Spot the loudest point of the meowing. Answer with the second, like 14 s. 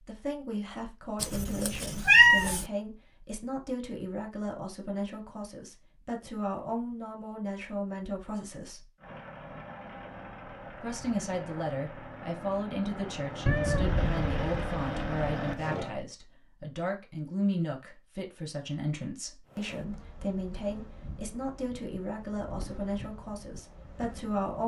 2 s.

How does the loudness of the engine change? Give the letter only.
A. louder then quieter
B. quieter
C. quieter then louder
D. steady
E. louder
E.